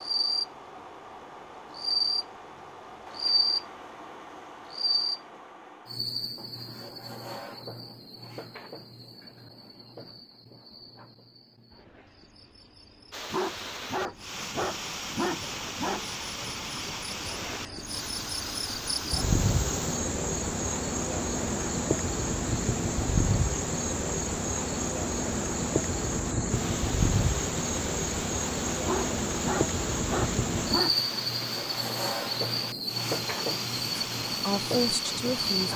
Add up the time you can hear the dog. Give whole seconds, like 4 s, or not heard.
5 s.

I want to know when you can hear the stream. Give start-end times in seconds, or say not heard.
13.1-35.7.